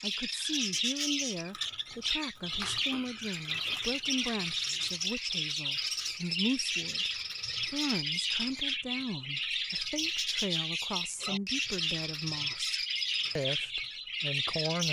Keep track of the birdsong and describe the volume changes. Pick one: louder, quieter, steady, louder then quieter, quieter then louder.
steady.